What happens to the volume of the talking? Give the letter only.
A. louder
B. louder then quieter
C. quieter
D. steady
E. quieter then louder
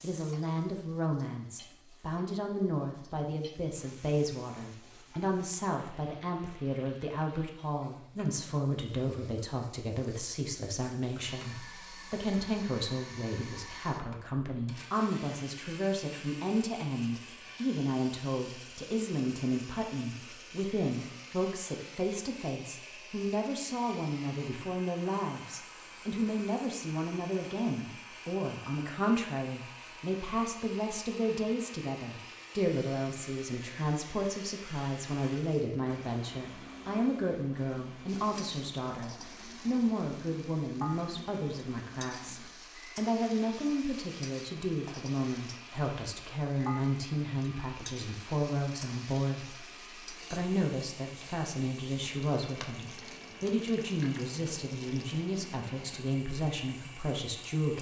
D.